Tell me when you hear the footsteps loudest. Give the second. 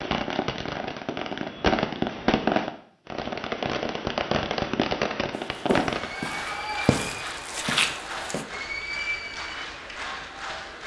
8 s.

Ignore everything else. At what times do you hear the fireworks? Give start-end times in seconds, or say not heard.
0.0-6.2.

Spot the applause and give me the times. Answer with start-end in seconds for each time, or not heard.
5.9-10.8.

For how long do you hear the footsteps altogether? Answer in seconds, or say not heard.
3 s.